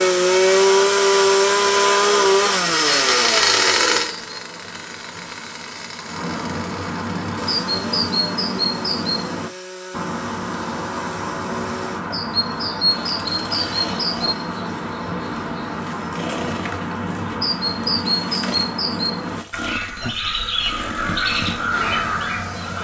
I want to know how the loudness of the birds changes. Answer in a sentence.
The loudness of the birds goes up.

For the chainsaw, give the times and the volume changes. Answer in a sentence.
The chainsaw can be heard from 0.0 to 22.8 s, getting quieter.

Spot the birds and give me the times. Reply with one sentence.
You can hear the birds from 0.0 to 22.8 s.